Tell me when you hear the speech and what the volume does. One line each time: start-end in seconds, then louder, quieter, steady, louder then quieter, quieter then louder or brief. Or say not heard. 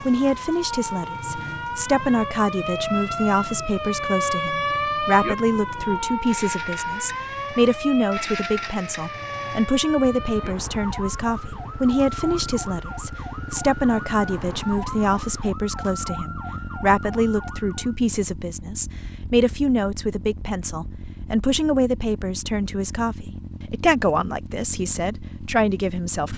0.0-26.3 steady.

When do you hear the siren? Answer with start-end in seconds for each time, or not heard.
0.0-18.0.